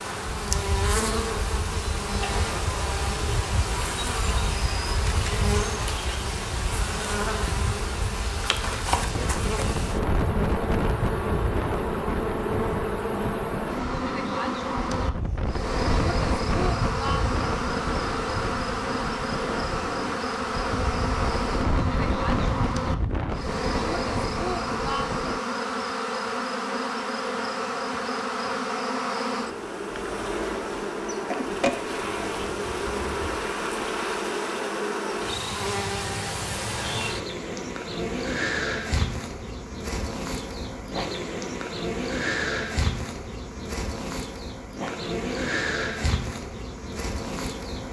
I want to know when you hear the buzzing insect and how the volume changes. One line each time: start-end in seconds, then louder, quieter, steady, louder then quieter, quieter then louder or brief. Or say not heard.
0.0-47.8 steady.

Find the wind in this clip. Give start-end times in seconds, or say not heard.
0.0-25.4.